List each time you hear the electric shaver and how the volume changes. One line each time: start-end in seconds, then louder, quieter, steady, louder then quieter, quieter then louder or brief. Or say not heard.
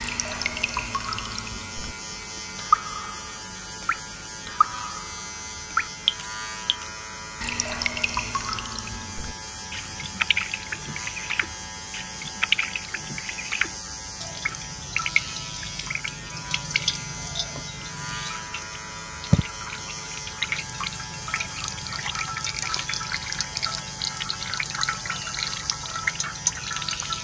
0.0-27.1 steady.